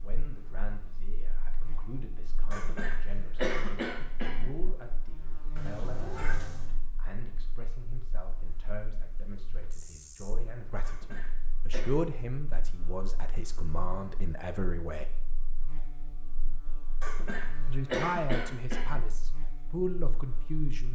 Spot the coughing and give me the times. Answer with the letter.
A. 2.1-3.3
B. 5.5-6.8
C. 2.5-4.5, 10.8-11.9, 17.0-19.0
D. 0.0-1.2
C.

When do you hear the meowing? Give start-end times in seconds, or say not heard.
5.5-6.8.